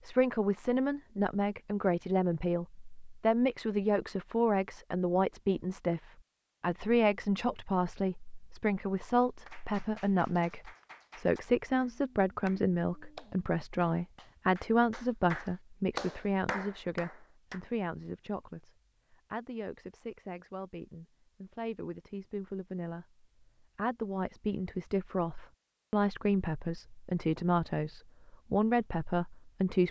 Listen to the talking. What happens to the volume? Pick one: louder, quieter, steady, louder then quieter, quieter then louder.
quieter then louder.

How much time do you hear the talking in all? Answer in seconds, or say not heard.
30 s.